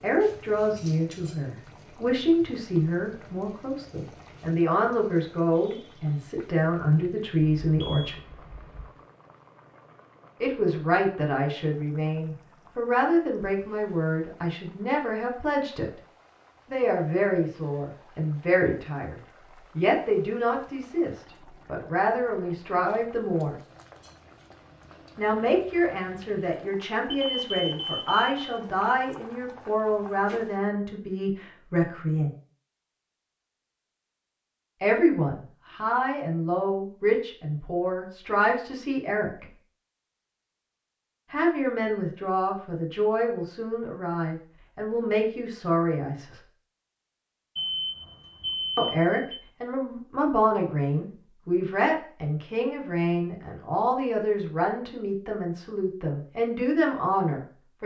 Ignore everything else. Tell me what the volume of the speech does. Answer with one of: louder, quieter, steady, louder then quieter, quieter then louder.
steady.